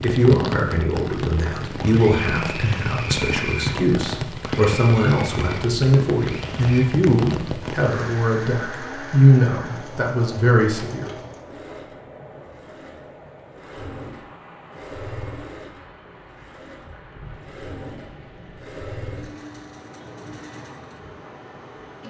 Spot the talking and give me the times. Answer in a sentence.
The talking can be heard from 0.0 to 11.1 s.